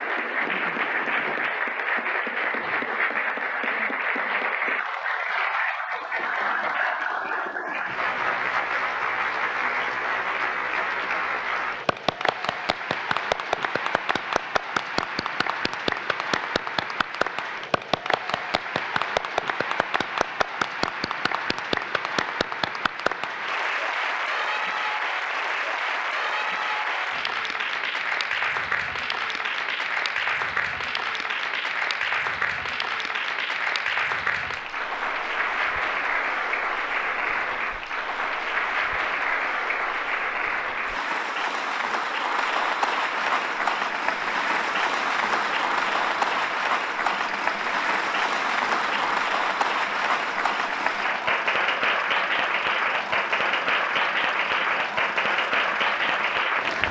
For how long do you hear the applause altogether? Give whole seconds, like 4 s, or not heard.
57 s.